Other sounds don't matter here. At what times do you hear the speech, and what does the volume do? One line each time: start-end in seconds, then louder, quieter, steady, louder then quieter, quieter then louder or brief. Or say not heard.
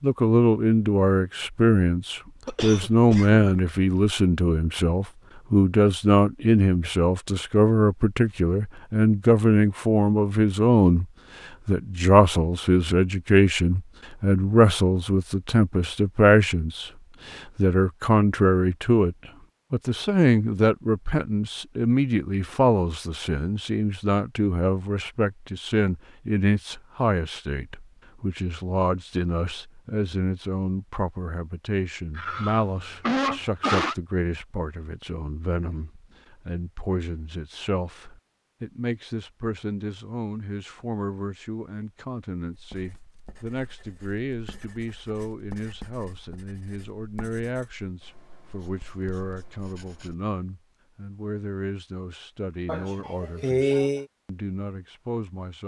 0.0-11.1 steady
11.7-55.6 quieter.